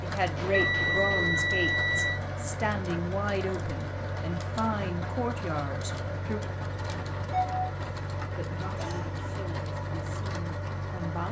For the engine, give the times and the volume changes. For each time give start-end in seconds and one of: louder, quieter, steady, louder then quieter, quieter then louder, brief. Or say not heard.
0.0-11.2 steady.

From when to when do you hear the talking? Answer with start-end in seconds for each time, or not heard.
0.0-6.4, 8.3-11.2.